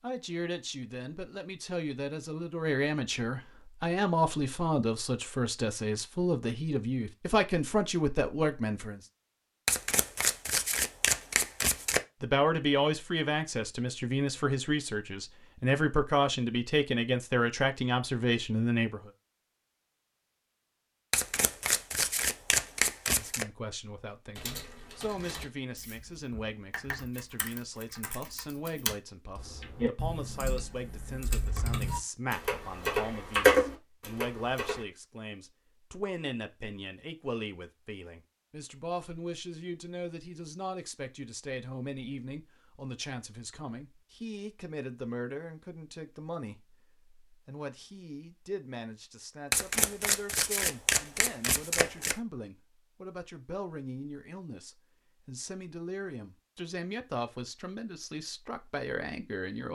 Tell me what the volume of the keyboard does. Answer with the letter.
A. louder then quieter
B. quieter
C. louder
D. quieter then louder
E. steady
C.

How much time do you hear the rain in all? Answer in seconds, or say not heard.
not heard.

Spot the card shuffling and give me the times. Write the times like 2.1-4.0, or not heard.
9.7-12.0, 21.1-23.4, 49.5-52.1.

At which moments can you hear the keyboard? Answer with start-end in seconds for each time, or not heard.
24.4-34.9.